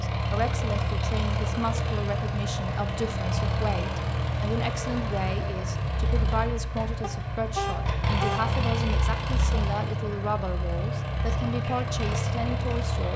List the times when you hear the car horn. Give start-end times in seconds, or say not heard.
7.0-8.4.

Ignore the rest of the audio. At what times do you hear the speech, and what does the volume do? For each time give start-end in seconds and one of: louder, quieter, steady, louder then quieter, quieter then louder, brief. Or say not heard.
0.0-13.1 steady.